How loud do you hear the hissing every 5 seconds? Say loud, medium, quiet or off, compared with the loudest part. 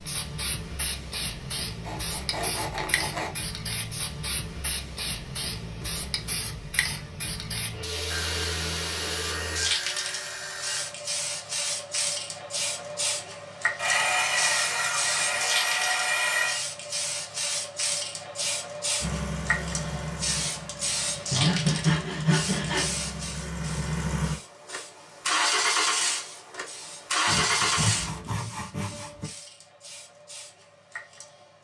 loud, loud, loud, loud, loud, quiet, quiet.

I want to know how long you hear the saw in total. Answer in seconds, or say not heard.
11 s.